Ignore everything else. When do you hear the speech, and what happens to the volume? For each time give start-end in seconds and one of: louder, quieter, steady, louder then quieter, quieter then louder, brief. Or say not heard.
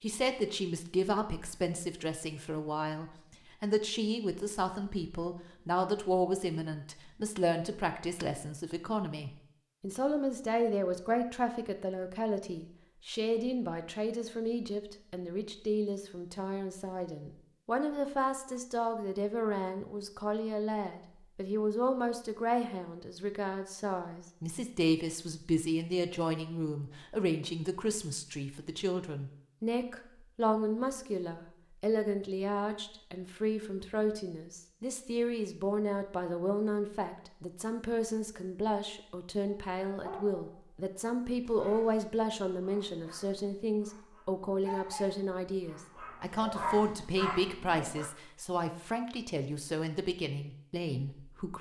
0.0-51.5 steady.